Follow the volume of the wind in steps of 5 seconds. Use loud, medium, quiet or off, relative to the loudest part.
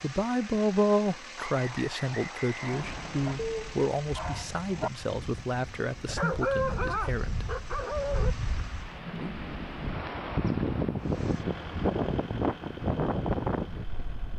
quiet, medium, loud.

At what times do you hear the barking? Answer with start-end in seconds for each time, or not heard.
2.5-8.3.